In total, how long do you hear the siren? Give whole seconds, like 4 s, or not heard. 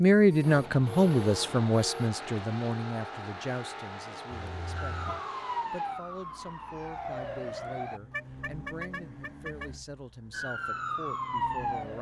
5 s.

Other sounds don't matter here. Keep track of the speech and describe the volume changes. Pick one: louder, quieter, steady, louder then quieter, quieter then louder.
quieter.